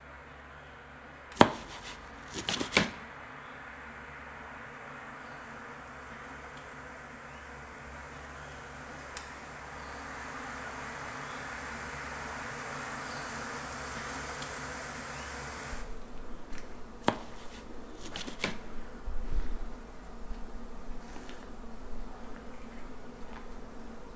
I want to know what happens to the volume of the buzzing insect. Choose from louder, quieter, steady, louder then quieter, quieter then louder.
louder then quieter.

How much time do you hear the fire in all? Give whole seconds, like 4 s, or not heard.
not heard.